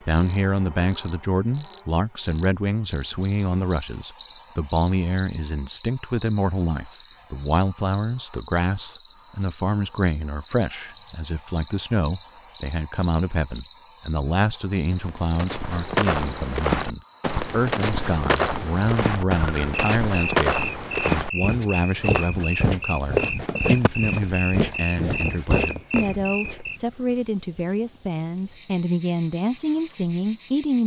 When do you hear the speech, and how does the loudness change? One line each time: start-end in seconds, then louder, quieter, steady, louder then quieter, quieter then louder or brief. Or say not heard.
0.1-30.8 steady.